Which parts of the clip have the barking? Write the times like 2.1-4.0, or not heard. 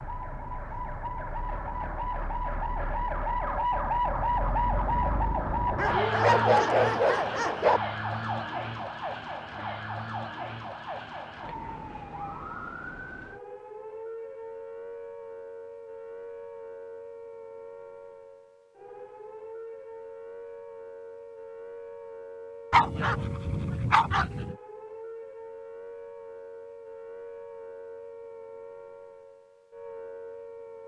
5.8-7.8, 22.7-24.6.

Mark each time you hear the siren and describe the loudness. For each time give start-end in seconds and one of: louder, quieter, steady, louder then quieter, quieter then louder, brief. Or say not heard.
0.0-30.8 quieter.